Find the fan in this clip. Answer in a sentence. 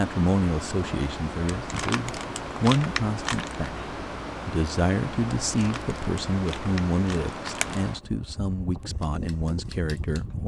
The fan can be heard from 0.0 to 10.4 s.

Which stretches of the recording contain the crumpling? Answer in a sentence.
The crumpling can be heard from 1.6 to 3.7 s and from 5.5 to 7.8 s.